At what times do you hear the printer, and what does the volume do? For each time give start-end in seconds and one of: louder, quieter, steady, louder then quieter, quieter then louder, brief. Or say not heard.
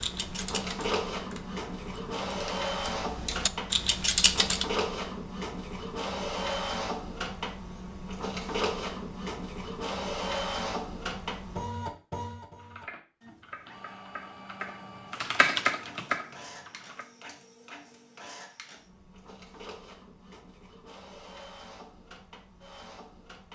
0.0-23.5 quieter.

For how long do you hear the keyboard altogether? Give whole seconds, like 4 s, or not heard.
9 s.